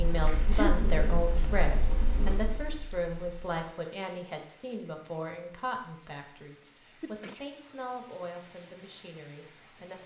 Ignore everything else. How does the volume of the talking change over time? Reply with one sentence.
The volume of the talking goes down.